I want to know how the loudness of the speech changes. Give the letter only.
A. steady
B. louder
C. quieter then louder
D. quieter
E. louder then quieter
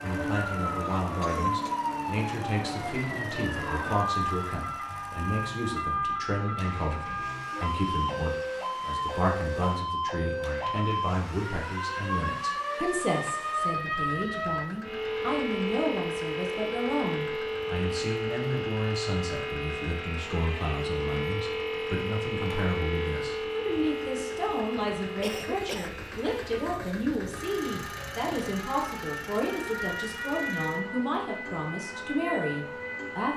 A.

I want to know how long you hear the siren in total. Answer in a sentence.
The siren can be heard for 33 seconds in total.